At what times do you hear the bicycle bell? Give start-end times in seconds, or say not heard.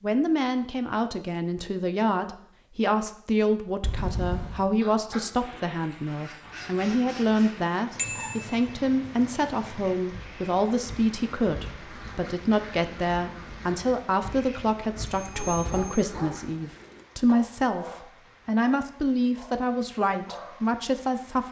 3.8-4.7, 8.0-8.6, 15.1-16.1.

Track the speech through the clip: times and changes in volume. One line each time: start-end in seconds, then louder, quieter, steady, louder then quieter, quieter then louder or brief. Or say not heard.
0.0-21.4 steady.